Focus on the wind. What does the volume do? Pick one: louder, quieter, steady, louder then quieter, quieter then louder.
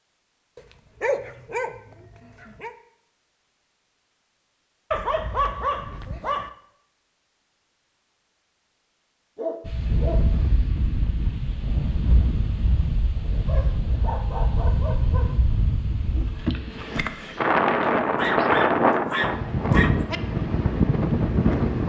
louder.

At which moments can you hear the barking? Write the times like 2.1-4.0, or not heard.
0.6-2.8, 4.9-6.5, 9.3-10.2, 13.4-15.3, 18.1-20.2.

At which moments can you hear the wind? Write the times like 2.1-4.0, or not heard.
9.7-21.8.